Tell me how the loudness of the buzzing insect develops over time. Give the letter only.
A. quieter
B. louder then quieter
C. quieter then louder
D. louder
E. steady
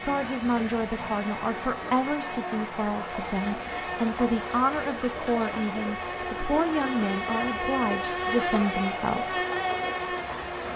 D.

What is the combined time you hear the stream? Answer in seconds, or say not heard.
11 s.